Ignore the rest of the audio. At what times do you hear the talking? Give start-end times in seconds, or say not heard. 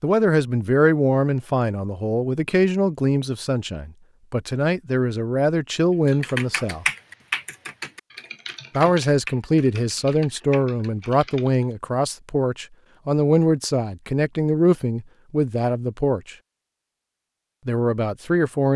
0.0-6.8, 8.8-16.4, 17.6-18.7.